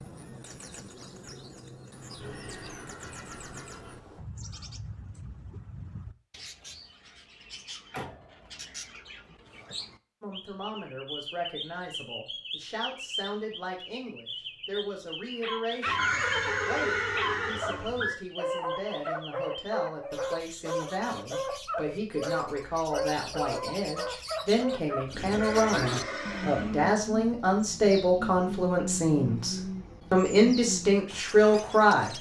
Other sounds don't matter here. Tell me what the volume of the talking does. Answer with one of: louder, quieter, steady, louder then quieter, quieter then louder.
louder.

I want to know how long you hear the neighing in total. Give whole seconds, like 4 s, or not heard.
6 s.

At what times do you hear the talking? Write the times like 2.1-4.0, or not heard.
10.2-32.1.